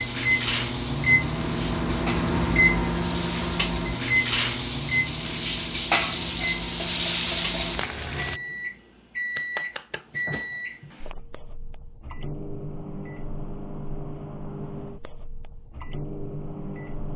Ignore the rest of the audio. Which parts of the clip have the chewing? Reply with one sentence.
You can't hear the chewing here.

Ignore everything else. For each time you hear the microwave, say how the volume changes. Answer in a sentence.
The microwave can be heard from 0.0 to 17.1 s, getting quieter.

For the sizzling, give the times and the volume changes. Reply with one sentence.
The sizzling can be heard from 0.0 to 8.4 s, getting louder.